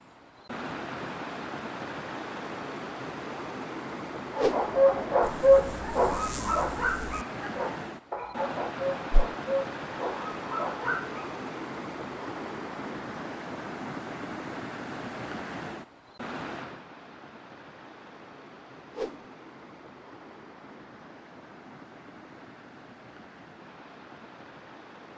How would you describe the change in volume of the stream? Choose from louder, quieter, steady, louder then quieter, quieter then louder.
quieter.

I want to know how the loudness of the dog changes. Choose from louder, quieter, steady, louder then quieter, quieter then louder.
quieter.